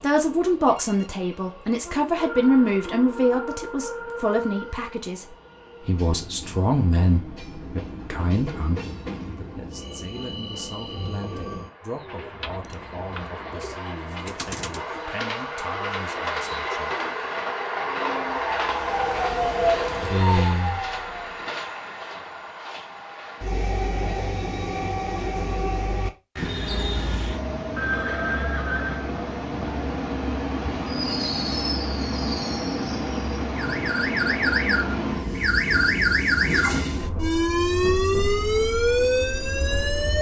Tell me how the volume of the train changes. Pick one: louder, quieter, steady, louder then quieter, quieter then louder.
louder.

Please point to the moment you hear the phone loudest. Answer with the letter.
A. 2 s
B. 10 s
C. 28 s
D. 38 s
C.